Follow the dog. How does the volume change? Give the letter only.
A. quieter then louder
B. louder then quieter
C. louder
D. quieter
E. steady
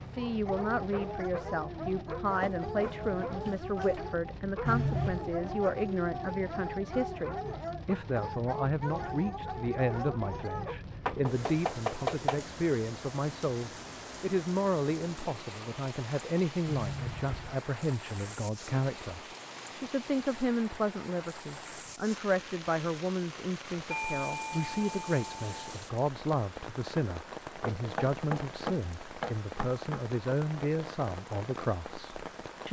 E.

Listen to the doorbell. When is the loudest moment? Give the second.
5 s.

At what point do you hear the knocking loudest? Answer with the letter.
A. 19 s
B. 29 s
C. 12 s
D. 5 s
C.